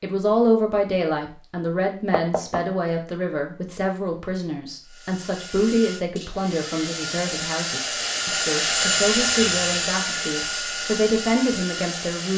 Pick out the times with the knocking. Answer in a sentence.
You can hear the knocking from 2.1 to 2.6 s.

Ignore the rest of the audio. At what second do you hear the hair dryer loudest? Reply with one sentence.
The volume of the hair dryer peaks at 9 seconds.